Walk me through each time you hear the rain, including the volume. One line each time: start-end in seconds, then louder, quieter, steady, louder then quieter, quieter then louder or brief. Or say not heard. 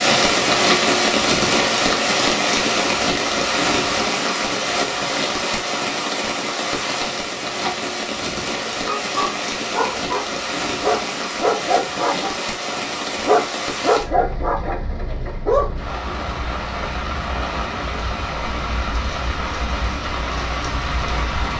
0.0-21.5 quieter.